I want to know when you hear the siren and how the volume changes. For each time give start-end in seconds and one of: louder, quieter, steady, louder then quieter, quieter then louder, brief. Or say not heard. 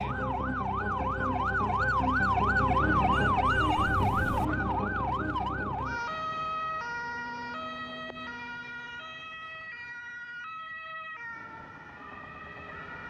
0.0-13.0 quieter.